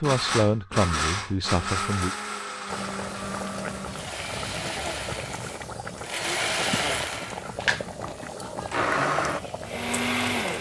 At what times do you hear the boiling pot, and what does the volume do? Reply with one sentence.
The boiling pot can be heard from 2.6 to 10.5 s, at a steady volume.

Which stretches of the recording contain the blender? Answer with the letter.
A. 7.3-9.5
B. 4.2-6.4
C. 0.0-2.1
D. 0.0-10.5
D.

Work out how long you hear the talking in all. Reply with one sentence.
You can hear the talking for 2 seconds altogether.